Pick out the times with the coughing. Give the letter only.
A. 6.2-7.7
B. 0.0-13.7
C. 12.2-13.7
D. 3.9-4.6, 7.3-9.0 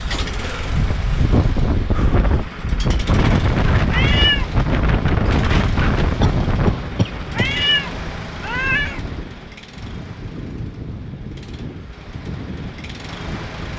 A.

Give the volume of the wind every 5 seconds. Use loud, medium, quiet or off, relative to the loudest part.
loud, loud, quiet.